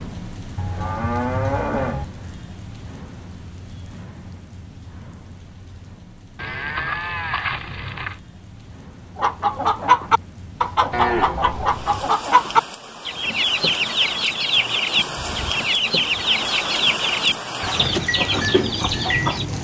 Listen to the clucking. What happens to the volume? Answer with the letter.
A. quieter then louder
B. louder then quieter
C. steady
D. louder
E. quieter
C.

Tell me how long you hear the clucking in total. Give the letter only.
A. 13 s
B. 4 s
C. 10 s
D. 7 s
C.